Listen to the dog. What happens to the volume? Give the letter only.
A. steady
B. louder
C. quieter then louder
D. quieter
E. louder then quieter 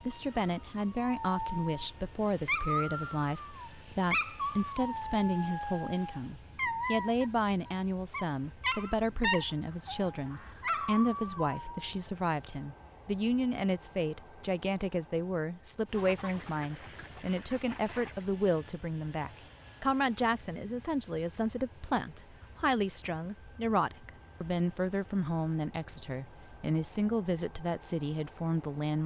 A.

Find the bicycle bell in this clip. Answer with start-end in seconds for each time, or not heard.
not heard.